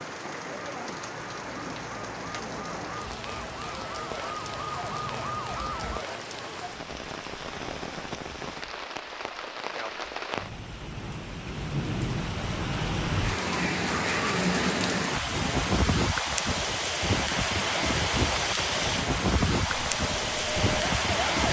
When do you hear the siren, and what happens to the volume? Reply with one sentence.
You can hear the siren from 0.0 to 6.0 s, getting louder; and briefly from 19.6 to 21.4 s.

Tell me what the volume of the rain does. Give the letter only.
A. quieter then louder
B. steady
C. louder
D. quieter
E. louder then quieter
C.